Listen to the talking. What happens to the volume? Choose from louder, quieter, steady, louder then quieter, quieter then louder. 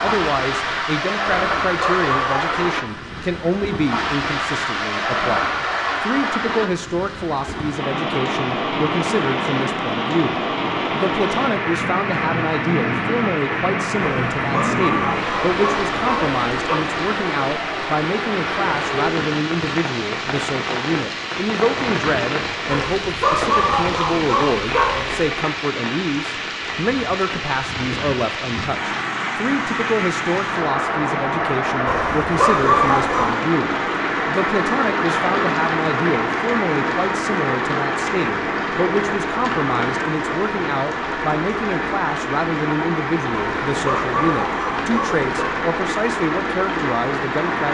steady.